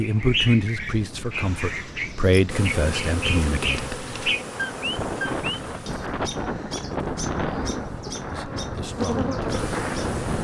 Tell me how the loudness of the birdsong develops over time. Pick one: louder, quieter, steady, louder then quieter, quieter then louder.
quieter.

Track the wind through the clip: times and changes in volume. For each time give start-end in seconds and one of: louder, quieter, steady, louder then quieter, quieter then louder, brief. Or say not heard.
0.0-10.3 louder.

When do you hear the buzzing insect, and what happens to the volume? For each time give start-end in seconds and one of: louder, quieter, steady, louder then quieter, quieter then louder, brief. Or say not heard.
2.5-10.3 quieter then louder.